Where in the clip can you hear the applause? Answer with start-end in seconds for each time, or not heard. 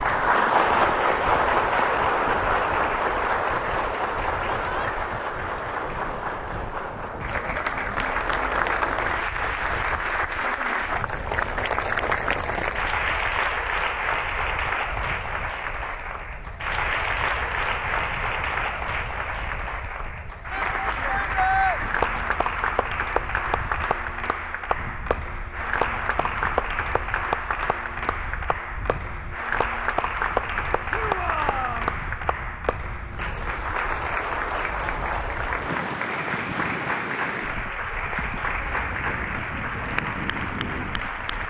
0.0-41.4.